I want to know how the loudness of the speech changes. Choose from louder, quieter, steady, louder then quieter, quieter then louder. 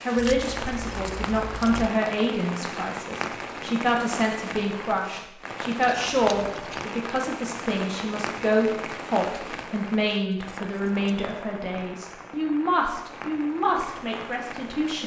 steady.